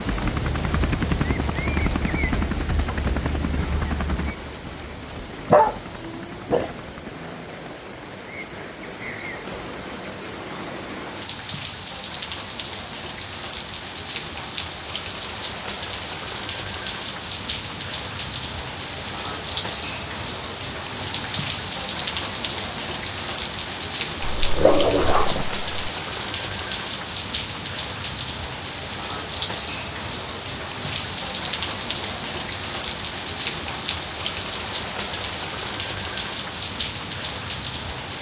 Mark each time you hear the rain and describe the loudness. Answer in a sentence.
The rain can be heard from 0.0 to 38.1 s, getting louder.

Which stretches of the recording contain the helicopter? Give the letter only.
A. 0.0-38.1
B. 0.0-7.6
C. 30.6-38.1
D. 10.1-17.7
B.